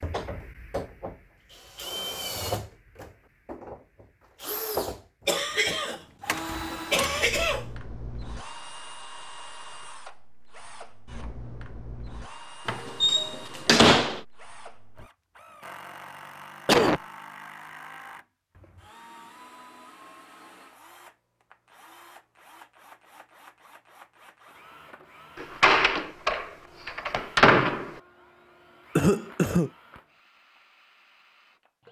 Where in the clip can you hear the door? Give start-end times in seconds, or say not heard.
6.2-7.3, 12.7-14.2, 25.4-27.9.